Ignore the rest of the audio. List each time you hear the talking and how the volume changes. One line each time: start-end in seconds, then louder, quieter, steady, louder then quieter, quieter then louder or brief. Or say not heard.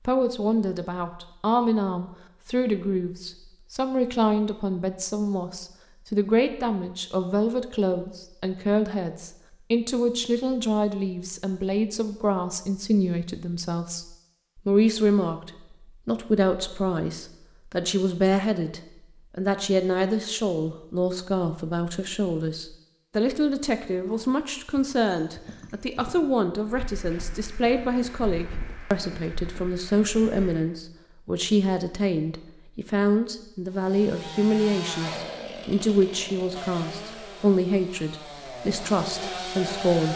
0.1-14.1 steady
14.7-40.1 steady.